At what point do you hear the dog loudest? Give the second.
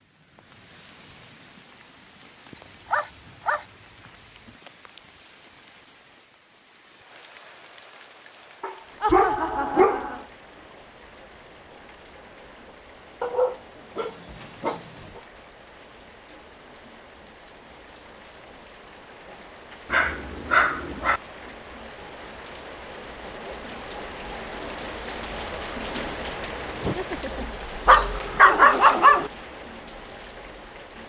29 s.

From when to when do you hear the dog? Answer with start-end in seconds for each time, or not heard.
2.9-3.6, 8.6-10.1, 13.2-15.2, 19.9-21.2, 27.9-29.3.